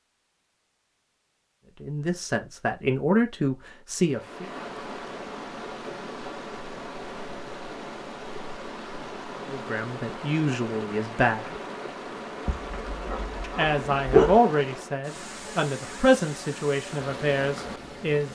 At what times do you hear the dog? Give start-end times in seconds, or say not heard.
12.4-14.3.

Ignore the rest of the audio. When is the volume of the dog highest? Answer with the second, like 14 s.
14 s.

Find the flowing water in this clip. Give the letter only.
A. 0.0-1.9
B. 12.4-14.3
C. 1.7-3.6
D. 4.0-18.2
D.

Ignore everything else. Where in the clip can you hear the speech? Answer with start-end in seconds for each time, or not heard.
1.8-4.5, 9.4-11.6, 13.4-18.2.